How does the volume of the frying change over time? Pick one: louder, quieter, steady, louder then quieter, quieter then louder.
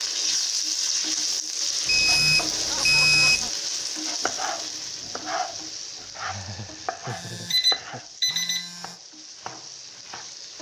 quieter.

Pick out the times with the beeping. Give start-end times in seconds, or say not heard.
1.9-3.5, 7.1-8.9.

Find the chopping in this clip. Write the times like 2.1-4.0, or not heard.
4.2-10.5.